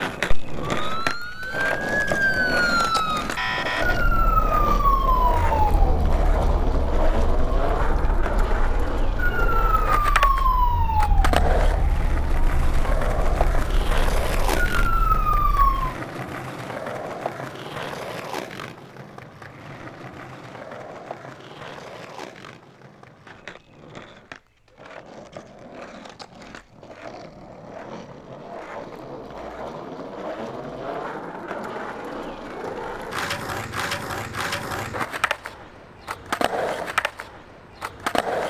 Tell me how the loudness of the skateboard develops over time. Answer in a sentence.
The volume of the skateboard goes down, then up.